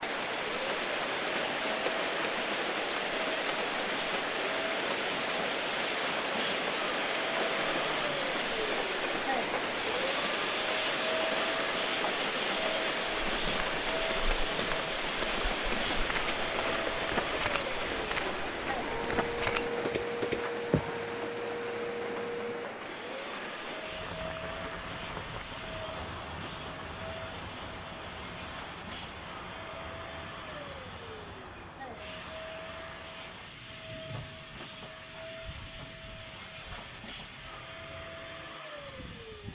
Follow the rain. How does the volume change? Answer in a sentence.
The volume of the rain goes down.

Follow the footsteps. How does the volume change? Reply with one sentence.
The volume of the footsteps goes up.